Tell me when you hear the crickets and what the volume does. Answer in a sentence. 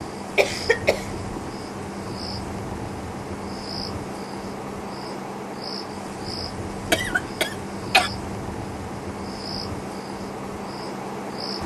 The crickets can be heard from 0.0 to 11.6 s, at a steady volume.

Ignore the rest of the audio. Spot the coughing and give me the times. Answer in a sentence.
You can hear the coughing from 0.3 to 1.1 s and from 6.9 to 8.1 s.